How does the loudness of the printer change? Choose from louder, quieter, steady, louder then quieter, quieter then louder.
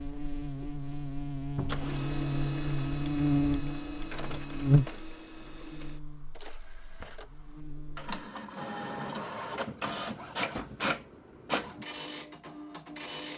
quieter then louder.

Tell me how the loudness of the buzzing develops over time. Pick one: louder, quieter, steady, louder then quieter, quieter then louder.
louder then quieter.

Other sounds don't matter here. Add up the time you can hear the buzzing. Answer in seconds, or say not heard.
8 s.